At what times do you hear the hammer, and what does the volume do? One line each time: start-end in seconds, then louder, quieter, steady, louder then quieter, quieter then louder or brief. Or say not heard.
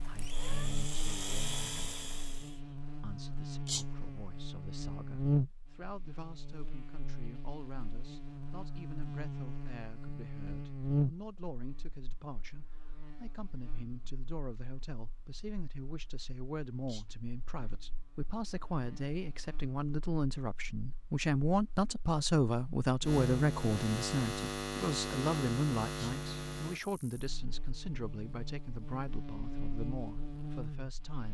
not heard.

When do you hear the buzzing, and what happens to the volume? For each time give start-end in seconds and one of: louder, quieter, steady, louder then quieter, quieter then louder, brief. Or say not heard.
0.0-31.2 quieter then louder.